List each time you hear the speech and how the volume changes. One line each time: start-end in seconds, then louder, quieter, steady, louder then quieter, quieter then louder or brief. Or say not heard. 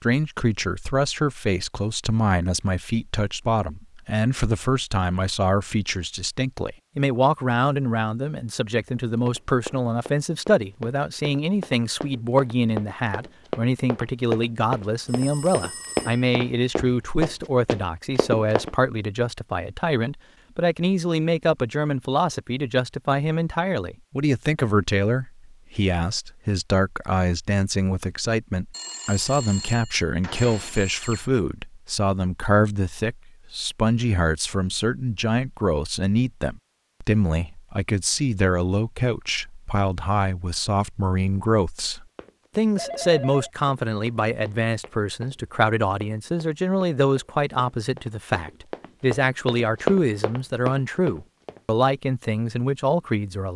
0.0-53.5 steady.